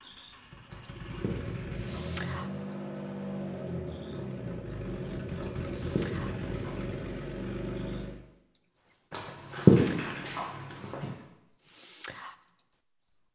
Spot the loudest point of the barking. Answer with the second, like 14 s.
10 s.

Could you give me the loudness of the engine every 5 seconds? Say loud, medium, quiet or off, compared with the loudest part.
loud, loud, off.